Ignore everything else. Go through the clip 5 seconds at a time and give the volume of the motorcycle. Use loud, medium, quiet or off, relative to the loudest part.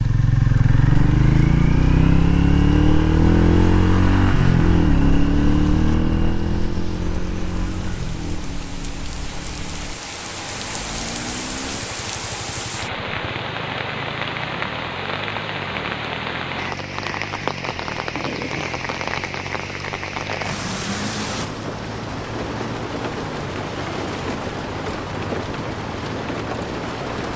loud, medium, quiet, quiet, quiet, quiet.